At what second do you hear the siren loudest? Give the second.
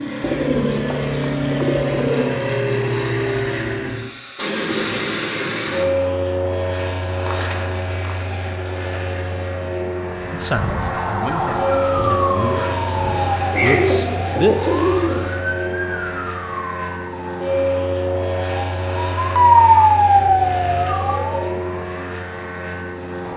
20 s.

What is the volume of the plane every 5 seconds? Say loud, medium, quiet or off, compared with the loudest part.
loud, loud, loud, loud, medium.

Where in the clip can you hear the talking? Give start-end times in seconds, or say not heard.
10.3-13.0, 13.6-14.7.